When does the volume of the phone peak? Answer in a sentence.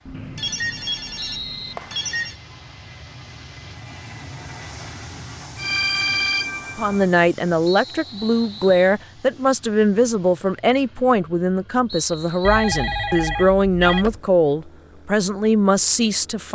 The volume of the phone peaks at 6 seconds.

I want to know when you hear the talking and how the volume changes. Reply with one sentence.
The talking can be heard from 6.8 to 16.4 s, at a steady volume.